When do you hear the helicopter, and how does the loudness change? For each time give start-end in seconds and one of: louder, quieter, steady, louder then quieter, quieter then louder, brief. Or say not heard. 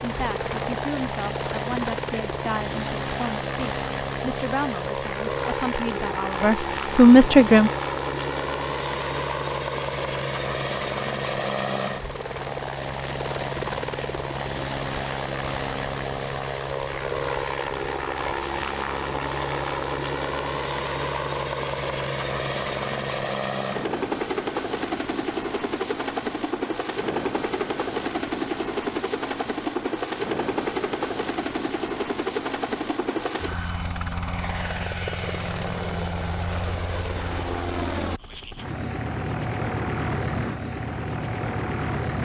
0.0-42.1 steady.